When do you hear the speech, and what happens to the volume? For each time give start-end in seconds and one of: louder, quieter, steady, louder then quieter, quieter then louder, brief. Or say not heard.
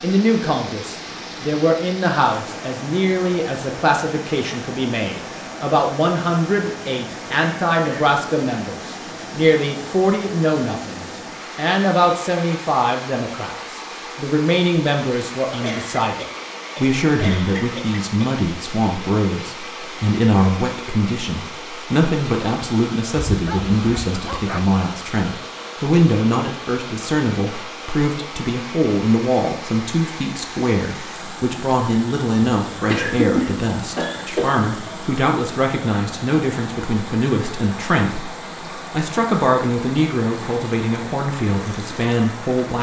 0.0-42.7 steady.